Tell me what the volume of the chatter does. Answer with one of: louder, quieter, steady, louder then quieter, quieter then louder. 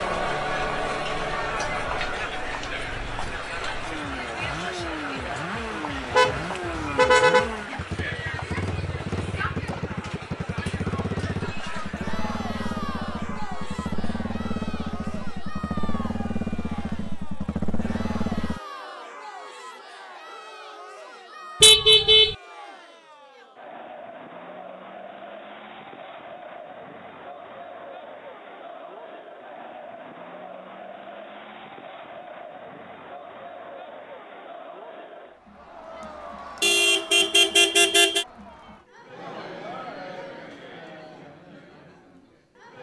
quieter.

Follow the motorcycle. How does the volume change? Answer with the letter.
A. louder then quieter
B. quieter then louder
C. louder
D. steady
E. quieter
C.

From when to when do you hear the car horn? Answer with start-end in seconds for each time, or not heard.
6.1-7.5, 21.6-22.4, 36.6-38.2.